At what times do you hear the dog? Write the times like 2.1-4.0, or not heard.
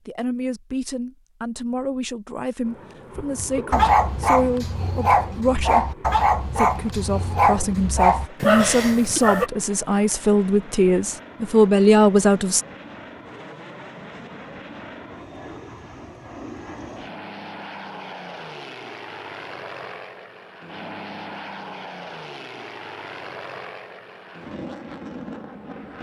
3.1-9.5.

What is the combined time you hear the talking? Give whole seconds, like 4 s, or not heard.
12 s.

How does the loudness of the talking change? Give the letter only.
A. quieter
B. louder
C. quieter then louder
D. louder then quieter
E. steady
B.